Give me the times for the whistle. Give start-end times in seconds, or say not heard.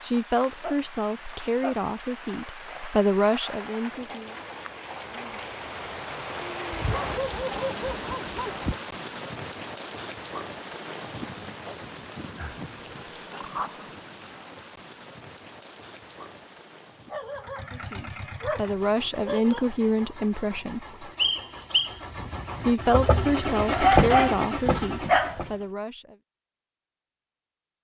21.1-21.9.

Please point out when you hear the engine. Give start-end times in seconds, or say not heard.
17.2-25.6.